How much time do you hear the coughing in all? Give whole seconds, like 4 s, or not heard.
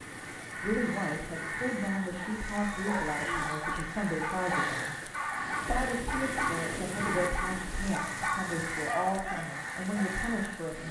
2 s.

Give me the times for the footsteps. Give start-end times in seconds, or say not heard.
not heard.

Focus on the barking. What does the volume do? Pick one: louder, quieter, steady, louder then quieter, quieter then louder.
steady.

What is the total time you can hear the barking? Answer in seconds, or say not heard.
8 s.